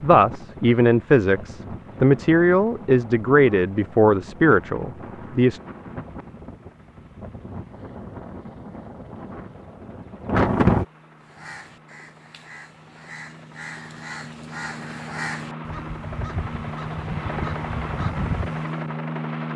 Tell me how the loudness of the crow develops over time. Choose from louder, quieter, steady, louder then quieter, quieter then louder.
louder.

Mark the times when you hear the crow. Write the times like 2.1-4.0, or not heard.
11.2-18.6.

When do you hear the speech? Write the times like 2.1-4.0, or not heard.
0.0-5.6.